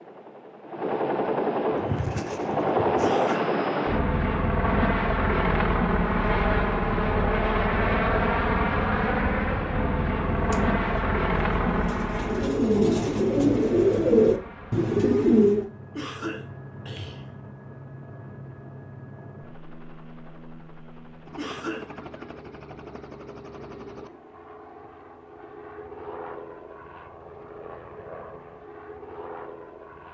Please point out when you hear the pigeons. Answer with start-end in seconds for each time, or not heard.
1.6-3.2, 10.3-15.7.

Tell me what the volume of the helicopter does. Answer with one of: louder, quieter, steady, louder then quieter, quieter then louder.
quieter.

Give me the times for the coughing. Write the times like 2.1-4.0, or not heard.
3.0-3.5, 15.9-17.3, 21.4-21.9.